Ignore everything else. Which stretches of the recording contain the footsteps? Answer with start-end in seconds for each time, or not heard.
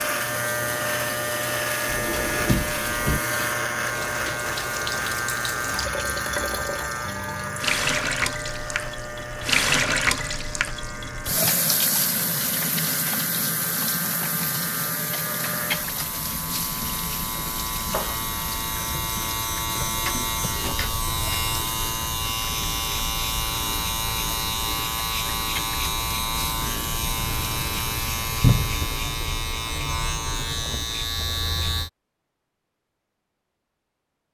not heard.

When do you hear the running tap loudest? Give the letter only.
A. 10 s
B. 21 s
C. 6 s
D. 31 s
A.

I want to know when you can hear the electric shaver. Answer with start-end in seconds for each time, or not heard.
0.0-31.9.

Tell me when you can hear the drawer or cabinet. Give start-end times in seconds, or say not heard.
1.9-3.2, 20.1-21.1, 28.4-28.9.